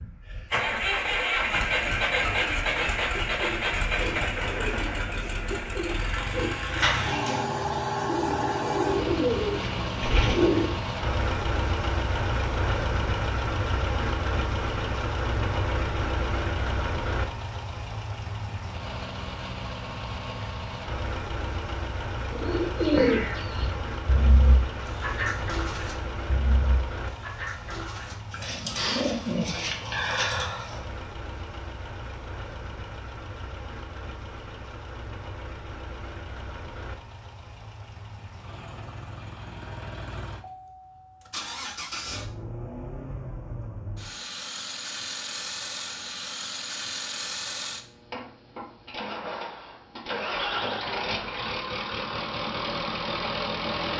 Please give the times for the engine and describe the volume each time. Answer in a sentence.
You can hear the engine from 0.0 to 53.9 s, getting quieter then louder.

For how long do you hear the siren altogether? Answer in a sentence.
The siren can't be heard in this clip.